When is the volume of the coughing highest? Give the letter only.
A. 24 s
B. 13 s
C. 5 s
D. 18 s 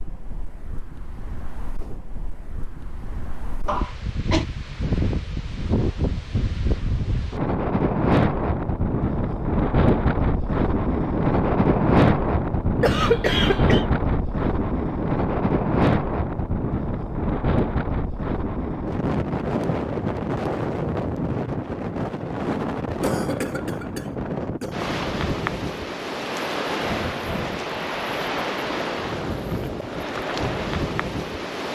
B.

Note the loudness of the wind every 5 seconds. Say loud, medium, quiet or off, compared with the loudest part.
quiet, loud, loud, loud, medium, medium, medium.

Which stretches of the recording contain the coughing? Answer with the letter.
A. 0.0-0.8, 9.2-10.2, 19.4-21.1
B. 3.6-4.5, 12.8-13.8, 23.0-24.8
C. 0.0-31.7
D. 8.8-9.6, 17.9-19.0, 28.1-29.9
B.